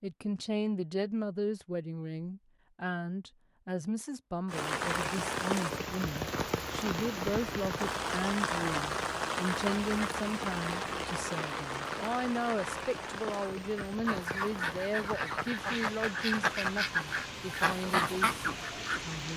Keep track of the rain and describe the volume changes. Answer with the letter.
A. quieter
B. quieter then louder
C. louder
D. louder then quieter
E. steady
A.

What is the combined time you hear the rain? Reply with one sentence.
The rain can be heard for 15 seconds in total.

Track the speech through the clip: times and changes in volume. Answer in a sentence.
You can hear the speech from 0.0 to 19.3 s, at a steady volume.